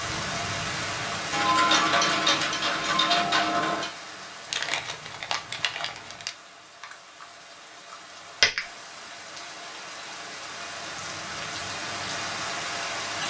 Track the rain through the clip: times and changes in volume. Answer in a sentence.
The rain can be heard from 0.0 to 13.2 s, getting quieter then louder.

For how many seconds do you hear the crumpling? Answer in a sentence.
The crumpling can be heard for 2 seconds in total.